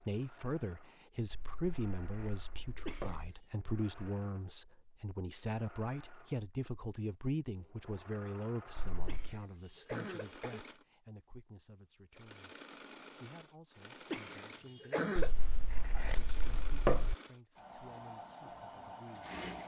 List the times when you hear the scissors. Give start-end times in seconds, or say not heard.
1.3-3.3, 8.8-9.4, 15.2-17.1.